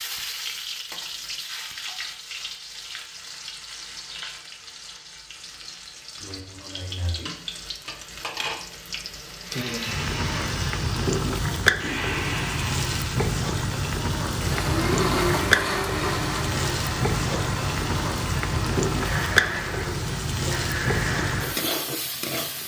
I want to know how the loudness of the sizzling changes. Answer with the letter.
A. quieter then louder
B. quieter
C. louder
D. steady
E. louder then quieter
C.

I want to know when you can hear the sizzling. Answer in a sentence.
You can hear the sizzling from 0.0 to 22.6 s.